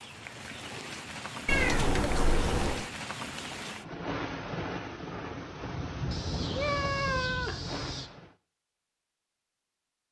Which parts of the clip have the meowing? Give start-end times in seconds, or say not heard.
1.4-2.9, 6.1-8.1.